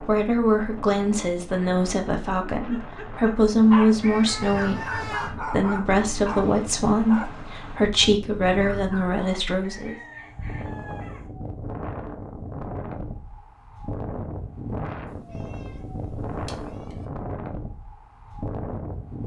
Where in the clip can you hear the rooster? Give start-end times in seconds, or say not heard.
9.6-11.3.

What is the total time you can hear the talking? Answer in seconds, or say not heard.
10 s.